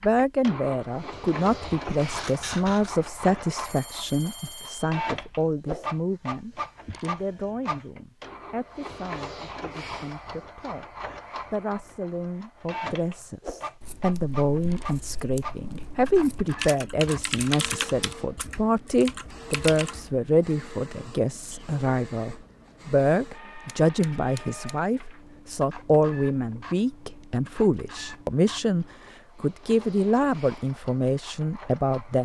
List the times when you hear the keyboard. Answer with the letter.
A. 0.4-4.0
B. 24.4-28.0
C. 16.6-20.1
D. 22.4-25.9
C.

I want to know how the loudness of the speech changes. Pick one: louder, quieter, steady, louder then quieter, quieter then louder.
quieter then louder.